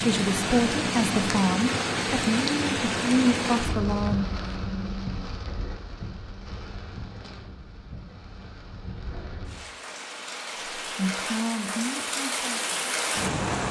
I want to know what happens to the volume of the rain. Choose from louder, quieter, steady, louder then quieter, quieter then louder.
quieter then louder.